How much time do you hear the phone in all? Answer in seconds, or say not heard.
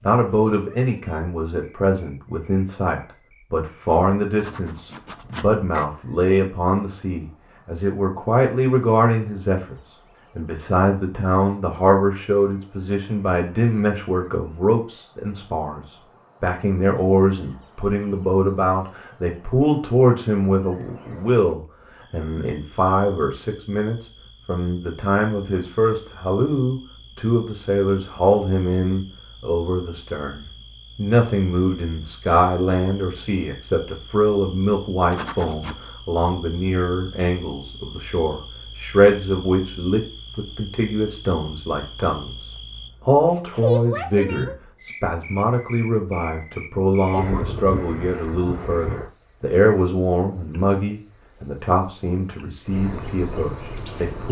2 s.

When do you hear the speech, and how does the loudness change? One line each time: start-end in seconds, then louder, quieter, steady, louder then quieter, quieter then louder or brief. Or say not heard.
0.0-54.2 steady.